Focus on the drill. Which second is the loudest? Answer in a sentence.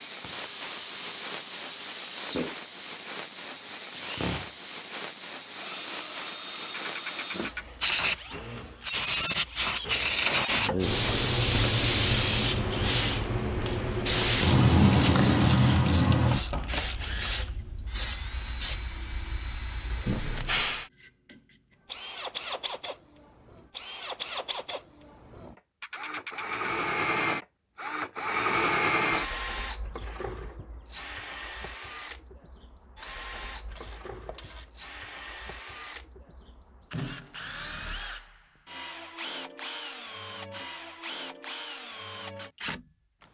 The loudest moment of the drill is at 29 seconds.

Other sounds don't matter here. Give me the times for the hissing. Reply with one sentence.
The hissing can be heard from 0.0 to 20.9 s.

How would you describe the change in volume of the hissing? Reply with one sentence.
The volume of the hissing goes up, then down.